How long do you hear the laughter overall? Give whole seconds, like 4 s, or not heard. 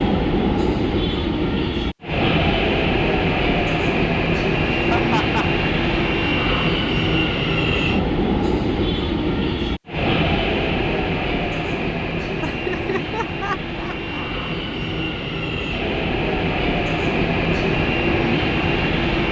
3 s.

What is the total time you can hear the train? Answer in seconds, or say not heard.
19 s.